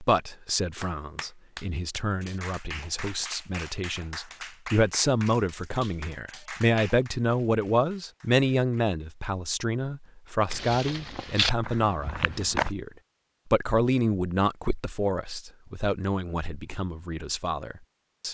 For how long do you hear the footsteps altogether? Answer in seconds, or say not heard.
2 s.